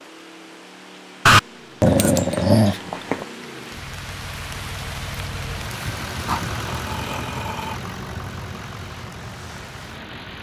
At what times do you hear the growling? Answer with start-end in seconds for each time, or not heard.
1.2-3.2, 6.2-7.8.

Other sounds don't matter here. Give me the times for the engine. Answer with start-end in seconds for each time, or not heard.
0.0-10.3.